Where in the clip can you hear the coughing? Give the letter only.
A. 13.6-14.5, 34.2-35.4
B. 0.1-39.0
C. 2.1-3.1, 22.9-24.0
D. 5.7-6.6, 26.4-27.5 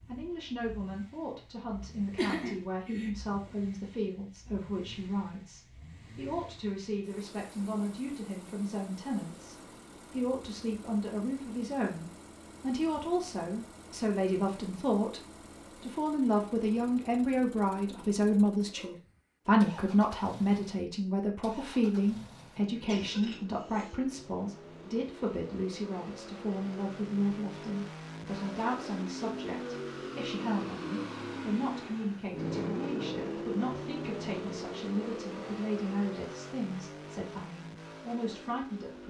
C.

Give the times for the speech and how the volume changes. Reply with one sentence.
The speech can be heard from 0.1 to 39.0 s, getting louder then quieter.